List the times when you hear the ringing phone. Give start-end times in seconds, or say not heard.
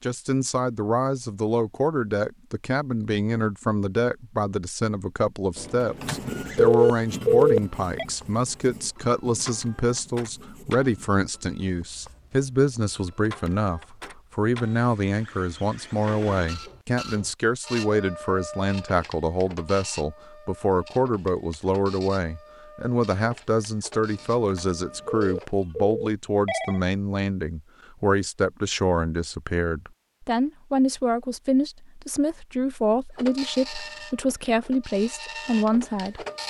5.5-8.1, 24.5-26.8.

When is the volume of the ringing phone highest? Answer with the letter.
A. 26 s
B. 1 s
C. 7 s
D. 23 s
C.